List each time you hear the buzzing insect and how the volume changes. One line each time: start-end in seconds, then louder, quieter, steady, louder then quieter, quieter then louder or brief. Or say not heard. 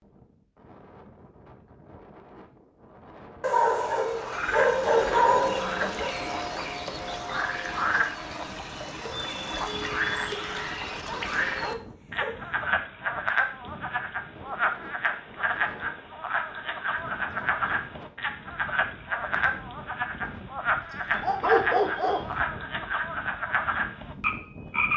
not heard.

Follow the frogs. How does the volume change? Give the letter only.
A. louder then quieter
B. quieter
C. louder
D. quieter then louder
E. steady
E.